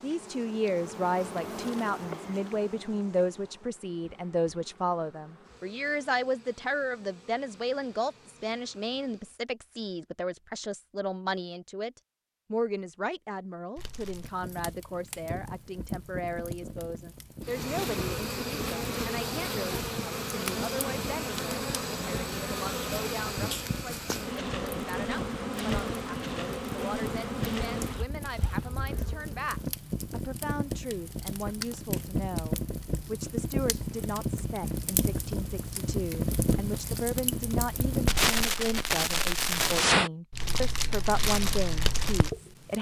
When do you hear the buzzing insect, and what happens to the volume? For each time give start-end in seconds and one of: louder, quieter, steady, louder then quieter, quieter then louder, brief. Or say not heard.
0.0-9.3 quieter
17.4-29.4 steady.